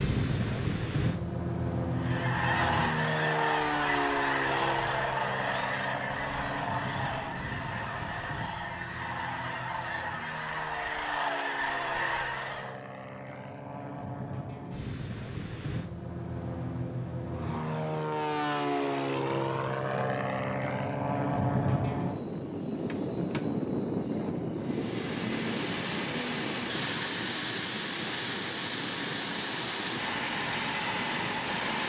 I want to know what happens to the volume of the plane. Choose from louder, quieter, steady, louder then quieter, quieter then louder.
quieter then louder.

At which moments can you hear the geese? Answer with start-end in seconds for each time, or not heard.
1.9-12.8.